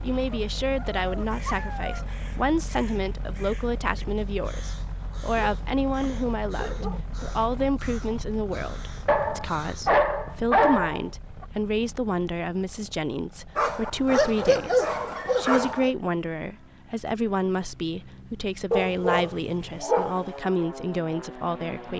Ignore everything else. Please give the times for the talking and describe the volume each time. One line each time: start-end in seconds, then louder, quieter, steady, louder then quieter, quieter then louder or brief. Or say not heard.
0.0-21.9 steady.